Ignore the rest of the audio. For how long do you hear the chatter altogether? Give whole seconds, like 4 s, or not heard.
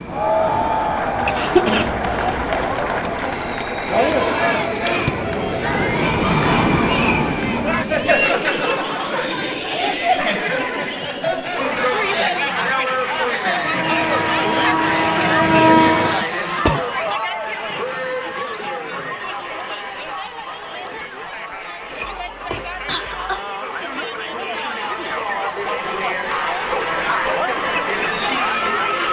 29 s.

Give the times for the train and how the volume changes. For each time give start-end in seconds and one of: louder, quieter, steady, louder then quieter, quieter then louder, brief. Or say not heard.
0.0-8.2 louder
13.5-16.3 brief.